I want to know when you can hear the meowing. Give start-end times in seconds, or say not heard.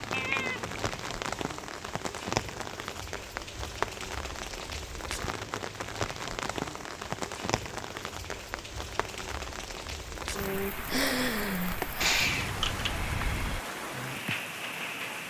0.1-1.0, 12.0-12.9.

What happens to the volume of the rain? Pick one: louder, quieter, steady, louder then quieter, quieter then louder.
steady.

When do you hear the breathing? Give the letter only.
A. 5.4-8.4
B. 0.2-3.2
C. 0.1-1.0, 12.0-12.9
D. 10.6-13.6
D.